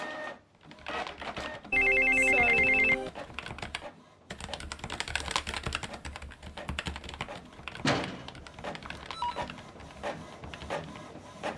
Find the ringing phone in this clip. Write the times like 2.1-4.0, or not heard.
1.7-3.1, 7.8-9.4.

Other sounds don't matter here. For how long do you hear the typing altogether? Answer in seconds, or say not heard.
11 s.